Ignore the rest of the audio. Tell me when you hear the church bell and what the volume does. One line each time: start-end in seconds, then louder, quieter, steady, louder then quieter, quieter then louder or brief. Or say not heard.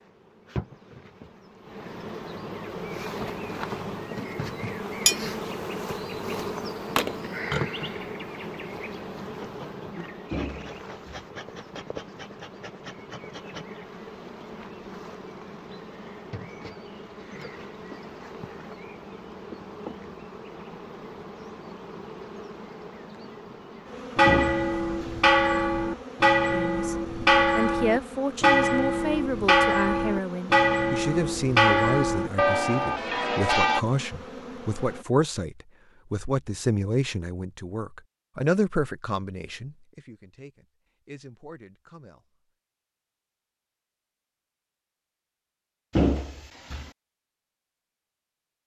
24.1-33.8 steady.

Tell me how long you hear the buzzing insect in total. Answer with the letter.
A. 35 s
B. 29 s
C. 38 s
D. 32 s
A.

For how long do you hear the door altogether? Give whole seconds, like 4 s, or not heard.
3 s.